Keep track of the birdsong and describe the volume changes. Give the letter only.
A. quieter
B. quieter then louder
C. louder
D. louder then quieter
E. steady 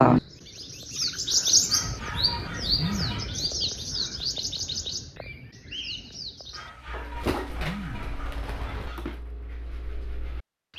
A.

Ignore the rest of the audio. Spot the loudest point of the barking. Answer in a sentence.
The volume of the barking peaks at 3 seconds.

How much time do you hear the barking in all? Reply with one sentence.
The barking can be heard for 4 seconds in total.